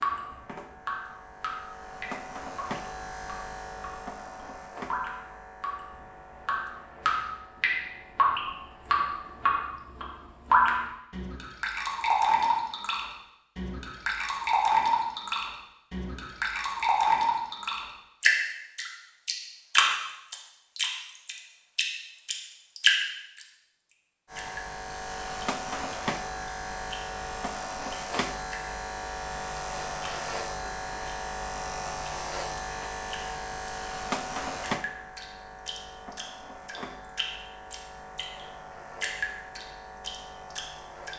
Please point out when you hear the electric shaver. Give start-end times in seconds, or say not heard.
0.0-9.6, 24.3-41.1.